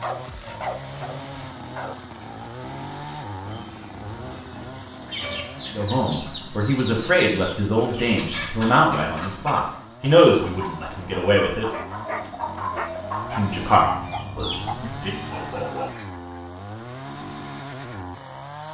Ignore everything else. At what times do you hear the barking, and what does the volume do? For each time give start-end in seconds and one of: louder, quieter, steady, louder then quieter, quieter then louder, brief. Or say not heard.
0.0-2.5 brief
11.7-16.1 steady.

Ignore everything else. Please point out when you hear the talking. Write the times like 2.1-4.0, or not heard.
5.8-11.7, 13.3-15.2.